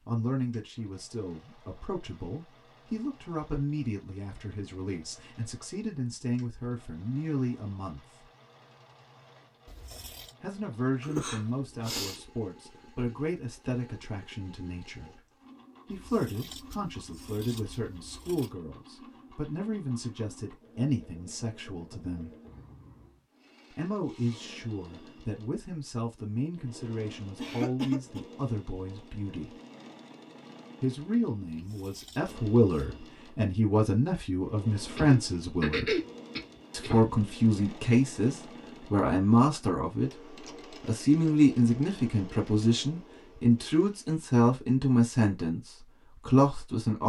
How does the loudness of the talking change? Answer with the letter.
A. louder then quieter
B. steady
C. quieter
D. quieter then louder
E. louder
E.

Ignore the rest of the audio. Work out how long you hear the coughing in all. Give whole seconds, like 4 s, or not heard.
4 s.